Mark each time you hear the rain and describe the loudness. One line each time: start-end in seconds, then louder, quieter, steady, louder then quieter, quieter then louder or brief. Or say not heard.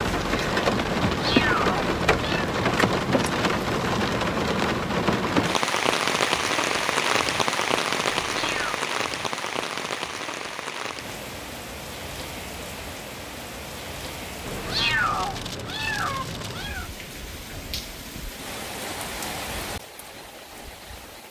0.0-21.2 quieter.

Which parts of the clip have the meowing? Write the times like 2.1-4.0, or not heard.
1.1-2.5, 8.2-8.8, 14.4-16.9.